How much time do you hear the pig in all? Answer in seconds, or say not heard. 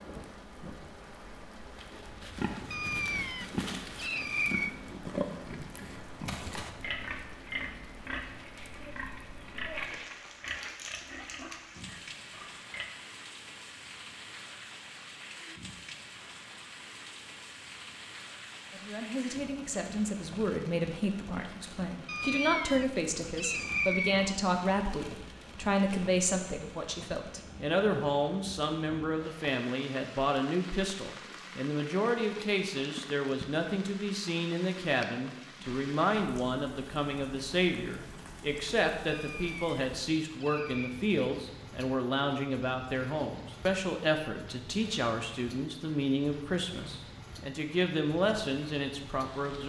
11 s.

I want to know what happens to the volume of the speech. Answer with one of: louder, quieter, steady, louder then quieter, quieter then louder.
steady.